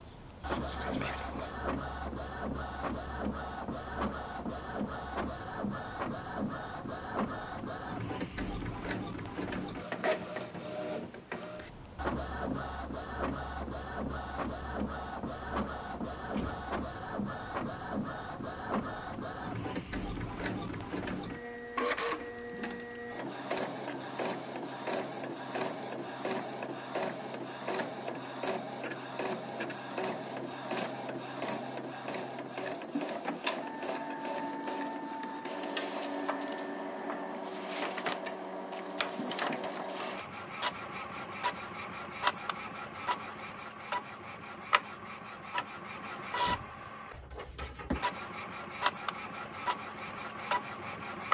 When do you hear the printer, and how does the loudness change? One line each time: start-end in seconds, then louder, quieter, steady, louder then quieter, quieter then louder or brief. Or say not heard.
0.0-51.2 steady.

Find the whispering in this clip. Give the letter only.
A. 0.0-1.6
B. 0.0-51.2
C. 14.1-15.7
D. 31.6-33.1
A.